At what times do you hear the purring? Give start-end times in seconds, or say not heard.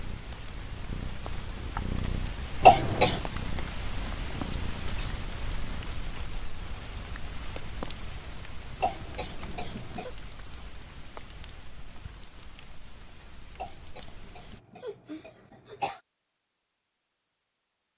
0.0-5.9.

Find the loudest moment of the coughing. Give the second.
3 s.